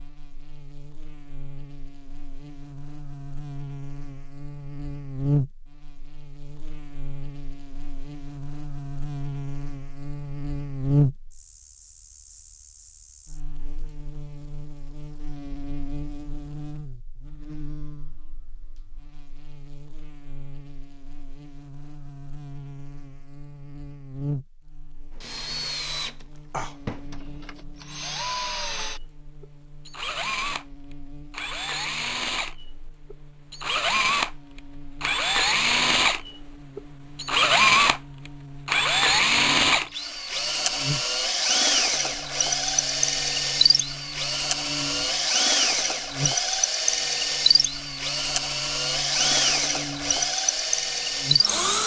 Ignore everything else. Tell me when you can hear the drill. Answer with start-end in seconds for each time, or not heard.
25.1-51.8.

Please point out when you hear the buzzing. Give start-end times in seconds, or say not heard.
0.0-51.5.